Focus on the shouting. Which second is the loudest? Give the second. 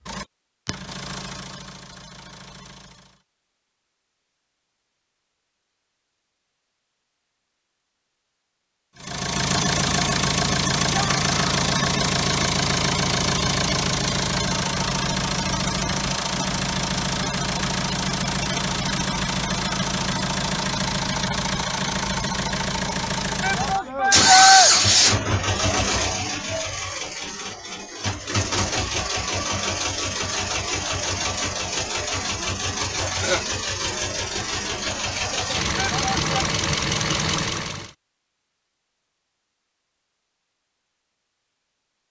24 s.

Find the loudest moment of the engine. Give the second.
25 s.